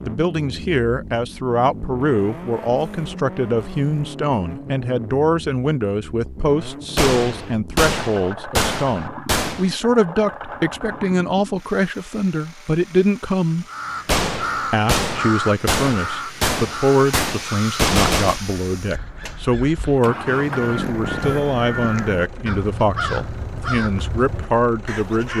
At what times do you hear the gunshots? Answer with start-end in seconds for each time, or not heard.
7.0-9.8, 14.1-18.4.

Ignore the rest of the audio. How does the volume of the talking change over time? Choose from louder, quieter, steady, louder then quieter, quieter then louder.
steady.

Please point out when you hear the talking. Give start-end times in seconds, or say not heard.
0.0-13.7, 14.7-25.3.